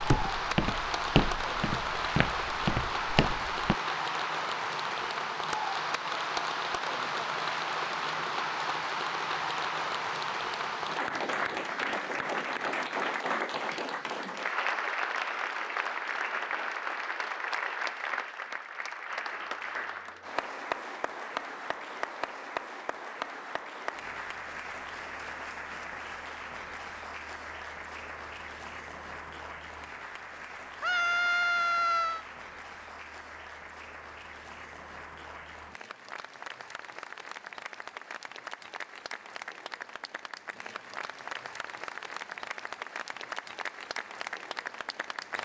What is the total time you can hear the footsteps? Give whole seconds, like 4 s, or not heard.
4 s.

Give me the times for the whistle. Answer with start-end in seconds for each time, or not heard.
not heard.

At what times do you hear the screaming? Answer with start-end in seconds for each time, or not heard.
30.8-32.2.